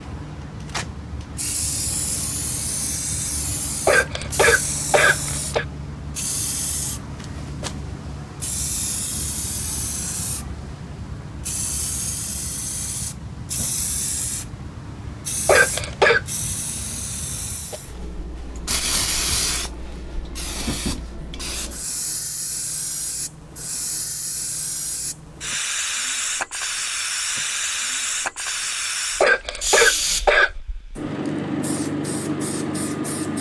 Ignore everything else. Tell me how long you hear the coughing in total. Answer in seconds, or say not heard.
4 s.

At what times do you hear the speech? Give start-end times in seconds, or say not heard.
not heard.